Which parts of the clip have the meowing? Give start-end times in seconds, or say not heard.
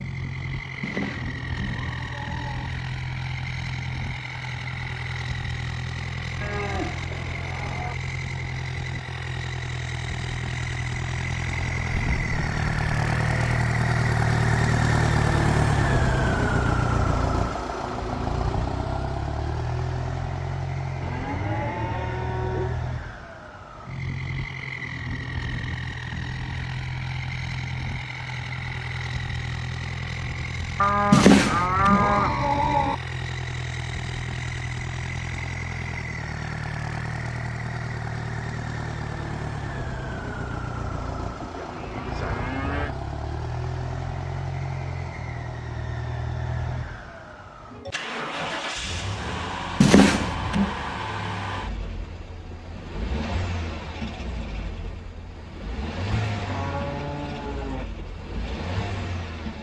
0.8-2.7, 31.1-33.0, 49.8-50.8.